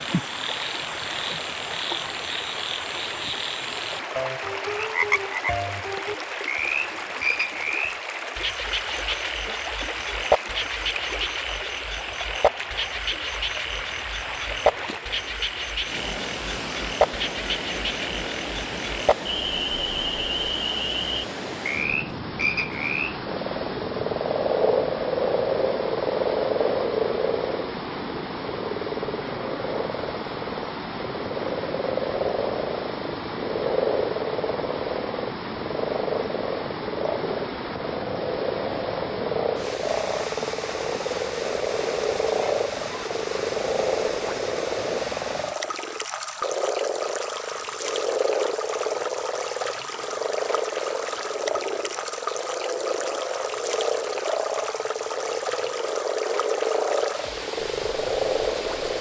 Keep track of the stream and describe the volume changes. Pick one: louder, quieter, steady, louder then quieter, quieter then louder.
steady.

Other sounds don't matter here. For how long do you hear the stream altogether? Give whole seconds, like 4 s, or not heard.
59 s.